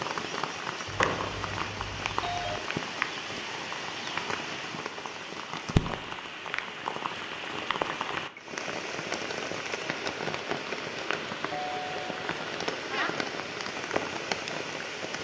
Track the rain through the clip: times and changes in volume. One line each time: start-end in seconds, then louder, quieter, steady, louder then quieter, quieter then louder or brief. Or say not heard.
0.0-15.2 steady.